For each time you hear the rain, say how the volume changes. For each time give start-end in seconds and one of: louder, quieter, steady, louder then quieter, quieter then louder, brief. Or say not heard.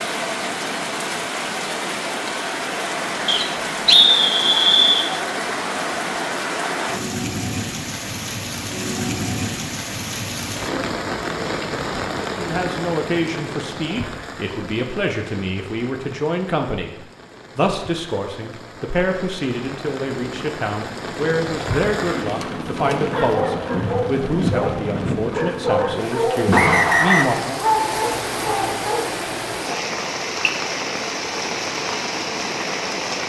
0.0-33.2 quieter then louder.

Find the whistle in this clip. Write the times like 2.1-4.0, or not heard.
3.2-5.1, 26.5-27.3.